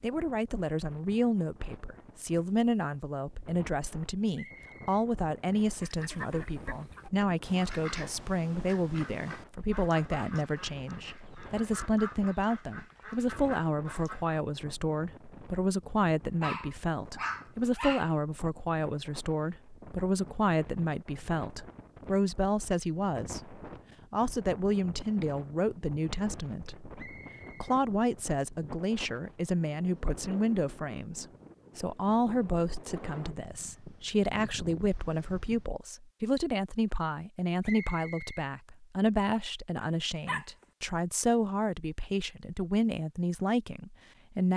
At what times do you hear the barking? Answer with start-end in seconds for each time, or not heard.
16.4-18.1, 39.8-40.6.